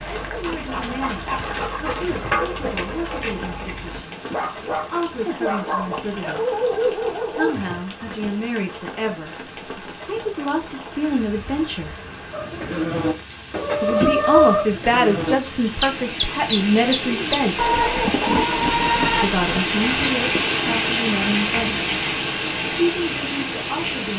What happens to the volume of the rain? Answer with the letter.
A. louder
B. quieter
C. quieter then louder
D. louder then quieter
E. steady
A.